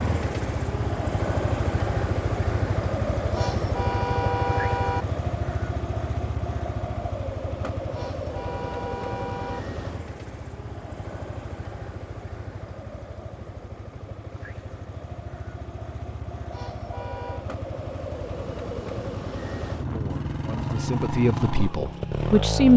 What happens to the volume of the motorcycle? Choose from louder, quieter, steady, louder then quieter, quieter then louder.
quieter then louder.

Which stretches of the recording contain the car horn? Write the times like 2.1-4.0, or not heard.
3.3-5.0, 7.9-9.6, 16.5-17.4.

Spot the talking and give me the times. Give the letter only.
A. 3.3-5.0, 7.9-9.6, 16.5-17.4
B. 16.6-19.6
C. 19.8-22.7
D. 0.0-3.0
C.